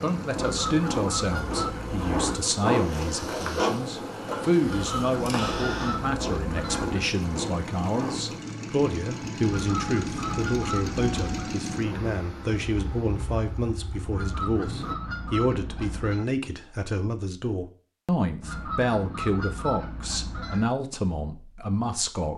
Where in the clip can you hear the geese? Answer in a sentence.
The geese can be heard from 0.3 to 2.4 s, from 4.6 to 7.0 s, from 9.4 to 11.6 s, from 14.1 to 16.2 s and from 18.4 to 20.7 s.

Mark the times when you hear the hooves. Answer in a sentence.
The hooves can't be heard in this clip.